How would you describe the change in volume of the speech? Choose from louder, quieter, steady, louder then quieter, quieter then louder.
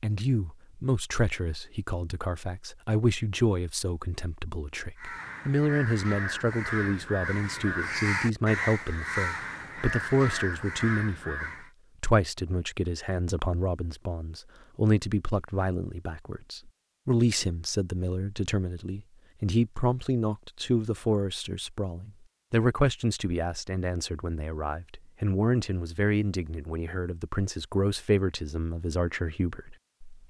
steady.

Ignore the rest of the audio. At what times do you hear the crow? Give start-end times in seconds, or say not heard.
5.0-11.7.